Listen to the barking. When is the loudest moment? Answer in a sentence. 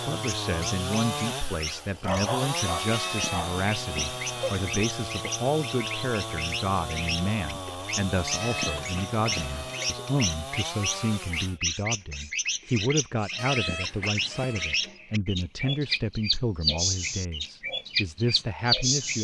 The volume of the barking peaks at 2 seconds.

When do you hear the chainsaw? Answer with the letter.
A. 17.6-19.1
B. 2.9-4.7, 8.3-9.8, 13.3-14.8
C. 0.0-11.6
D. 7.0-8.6
C.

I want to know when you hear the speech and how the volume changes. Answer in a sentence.
You can hear the speech from 0.1 to 19.1 s, at a steady volume.